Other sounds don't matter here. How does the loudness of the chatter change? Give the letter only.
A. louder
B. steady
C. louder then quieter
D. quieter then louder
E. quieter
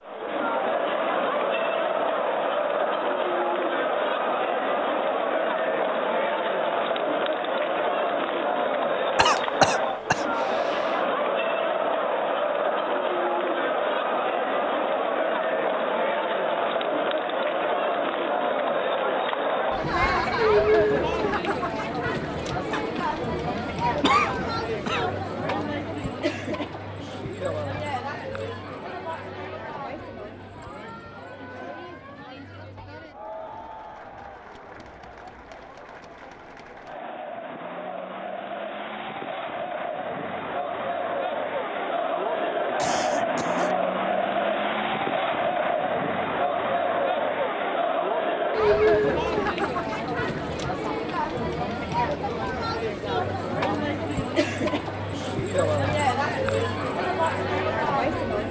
D.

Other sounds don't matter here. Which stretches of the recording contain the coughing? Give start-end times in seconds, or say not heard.
9.2-10.2, 22.7-25.2, 42.8-43.8.